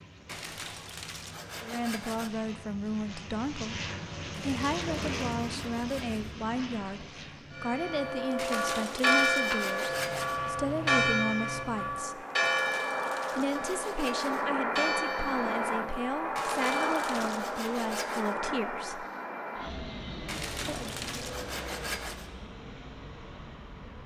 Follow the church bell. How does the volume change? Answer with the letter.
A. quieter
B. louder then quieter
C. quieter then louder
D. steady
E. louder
A.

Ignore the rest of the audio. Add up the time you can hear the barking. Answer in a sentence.
The barking can't be heard in this clip.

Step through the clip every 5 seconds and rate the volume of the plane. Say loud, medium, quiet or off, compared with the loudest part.
medium, medium, loud, loud, medium.